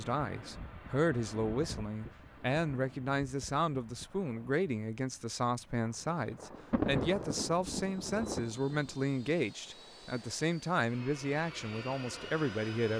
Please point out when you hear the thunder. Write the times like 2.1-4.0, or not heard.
6.1-9.2.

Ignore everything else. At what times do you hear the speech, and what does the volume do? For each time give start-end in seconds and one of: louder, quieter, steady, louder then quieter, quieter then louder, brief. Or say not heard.
0.0-12.9 steady.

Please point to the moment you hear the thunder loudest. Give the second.
7 s.